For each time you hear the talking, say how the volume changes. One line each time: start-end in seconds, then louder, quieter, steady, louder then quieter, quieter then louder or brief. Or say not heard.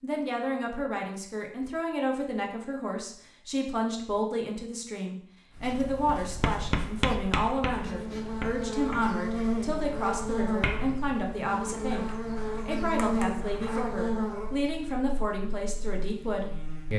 0.0-16.9 steady.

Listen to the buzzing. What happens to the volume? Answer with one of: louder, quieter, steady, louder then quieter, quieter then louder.
quieter.